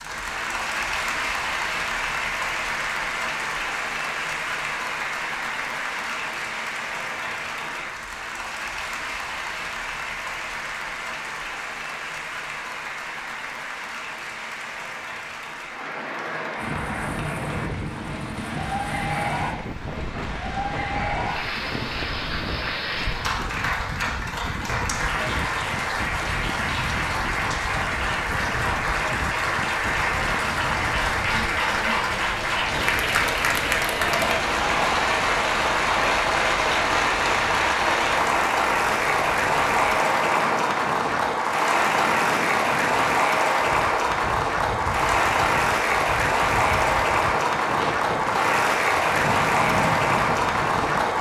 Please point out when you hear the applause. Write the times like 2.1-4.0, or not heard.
0.0-51.1.